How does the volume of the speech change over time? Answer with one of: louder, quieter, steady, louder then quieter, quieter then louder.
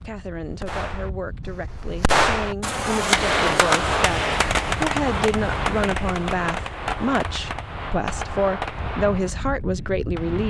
louder.